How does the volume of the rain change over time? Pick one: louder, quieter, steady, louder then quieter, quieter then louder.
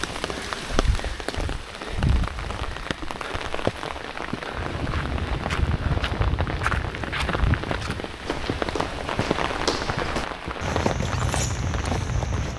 steady.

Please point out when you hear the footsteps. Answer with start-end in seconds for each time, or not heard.
4.5-12.5.